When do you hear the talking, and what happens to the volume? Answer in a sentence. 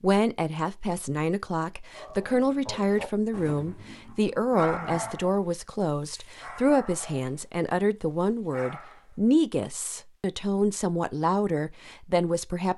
You can hear the talking from 0.0 to 12.7 s, at a steady volume.